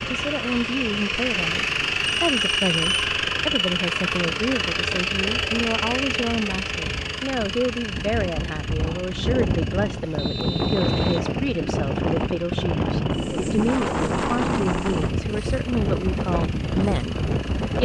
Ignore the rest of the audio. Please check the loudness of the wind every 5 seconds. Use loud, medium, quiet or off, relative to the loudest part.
quiet, medium, loud, loud.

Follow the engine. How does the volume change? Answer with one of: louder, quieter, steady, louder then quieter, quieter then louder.
quieter.